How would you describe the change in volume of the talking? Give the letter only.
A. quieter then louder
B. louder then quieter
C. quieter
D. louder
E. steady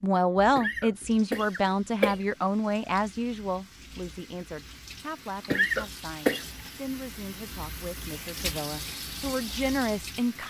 A.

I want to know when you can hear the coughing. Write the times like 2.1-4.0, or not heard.
0.6-2.1, 5.5-6.5.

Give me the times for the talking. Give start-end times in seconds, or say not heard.
0.0-10.4.